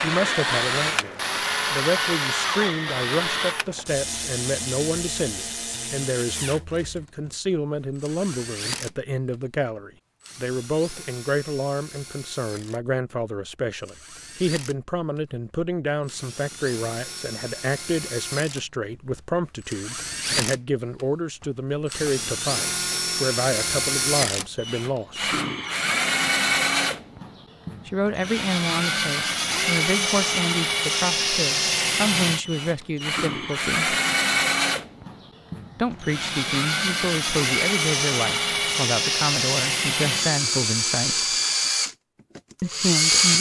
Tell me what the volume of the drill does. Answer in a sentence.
The volume of the drill goes down, then up.